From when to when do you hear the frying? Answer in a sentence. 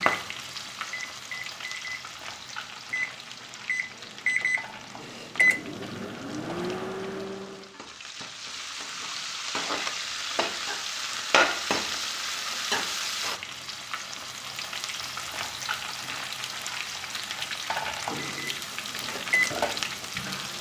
The frying can be heard from 0.0 to 20.5 s.